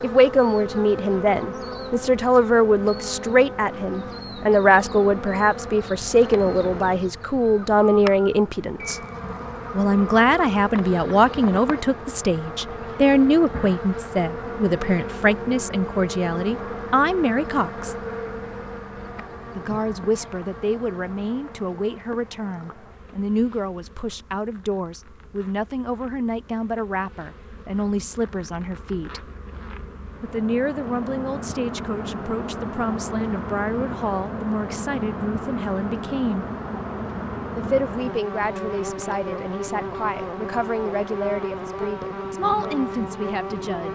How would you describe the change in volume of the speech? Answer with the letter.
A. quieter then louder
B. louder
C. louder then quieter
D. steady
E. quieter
E.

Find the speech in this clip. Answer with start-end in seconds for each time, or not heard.
0.0-9.0, 9.7-17.9, 19.6-29.2, 30.2-36.5, 37.5-43.9.